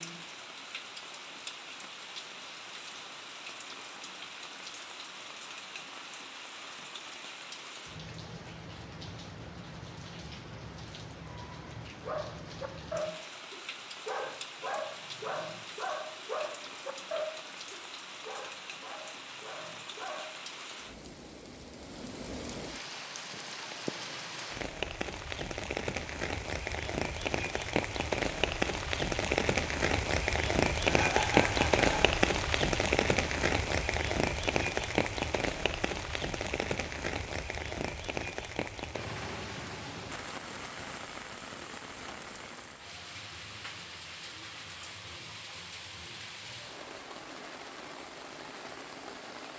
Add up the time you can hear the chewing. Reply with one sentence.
You can't hear the chewing here.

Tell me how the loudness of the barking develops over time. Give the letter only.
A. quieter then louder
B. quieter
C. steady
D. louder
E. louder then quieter
B.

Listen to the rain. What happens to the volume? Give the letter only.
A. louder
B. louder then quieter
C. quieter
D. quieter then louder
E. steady
B.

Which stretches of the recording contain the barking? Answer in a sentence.
You can hear the barking from 12.0 to 20.4 s.